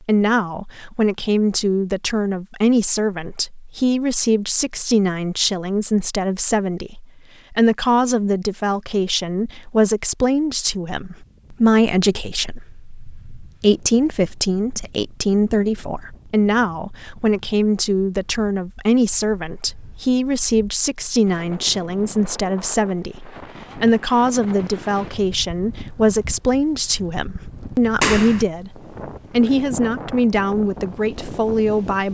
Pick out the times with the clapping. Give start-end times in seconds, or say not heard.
28.0-28.4.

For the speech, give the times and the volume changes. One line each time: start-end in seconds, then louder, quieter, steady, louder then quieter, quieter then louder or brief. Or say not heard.
0.1-32.0 steady.